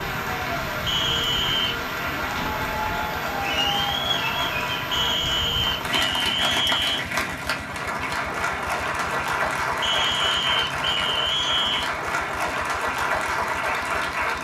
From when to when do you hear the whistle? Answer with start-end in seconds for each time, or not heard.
0.8-1.7, 4.9-7.0, 9.8-11.9.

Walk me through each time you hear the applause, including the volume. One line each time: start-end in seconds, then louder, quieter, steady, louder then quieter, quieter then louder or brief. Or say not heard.
0.0-14.3 steady.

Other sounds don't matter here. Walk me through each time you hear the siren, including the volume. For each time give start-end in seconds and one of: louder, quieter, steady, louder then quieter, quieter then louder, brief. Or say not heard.
not heard.